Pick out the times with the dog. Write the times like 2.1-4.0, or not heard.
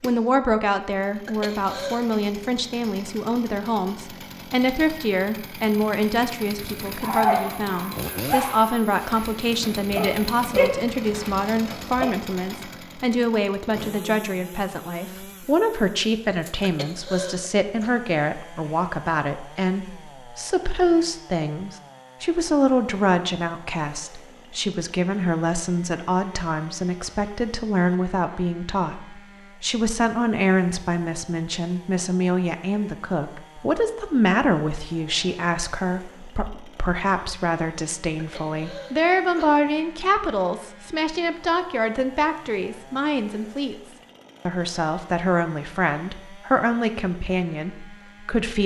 6.7-12.1.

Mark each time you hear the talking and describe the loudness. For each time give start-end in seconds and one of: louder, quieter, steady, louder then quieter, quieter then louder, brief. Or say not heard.
0.0-48.6 steady.